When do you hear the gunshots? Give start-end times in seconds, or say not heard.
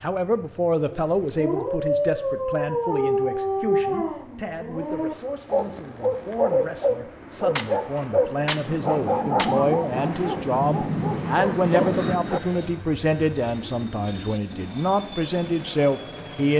7.5-9.5.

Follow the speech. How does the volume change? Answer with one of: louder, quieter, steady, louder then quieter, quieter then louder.
quieter then louder.